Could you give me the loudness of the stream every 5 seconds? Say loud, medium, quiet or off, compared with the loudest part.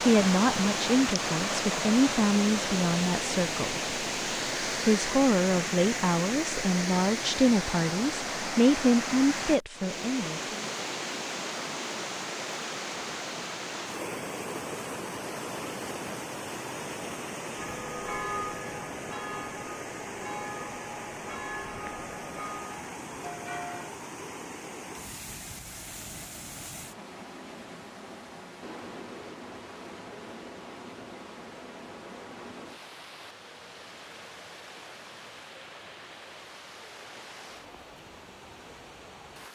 loud, loud, medium, medium, medium, quiet, quiet, quiet.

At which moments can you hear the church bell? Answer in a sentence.
You can hear the church bell from 17.5 to 23.9 s.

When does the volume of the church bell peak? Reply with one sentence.
The volume of the church bell peaks at 18 seconds.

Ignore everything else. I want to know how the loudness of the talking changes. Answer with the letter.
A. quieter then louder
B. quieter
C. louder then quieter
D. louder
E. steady
E.